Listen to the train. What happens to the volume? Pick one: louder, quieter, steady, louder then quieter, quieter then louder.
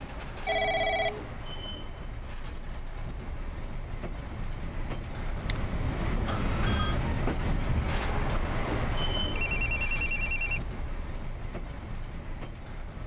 louder then quieter.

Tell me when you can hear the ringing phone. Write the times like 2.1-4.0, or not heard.
0.5-1.2, 5.5-7.0, 9.3-10.6.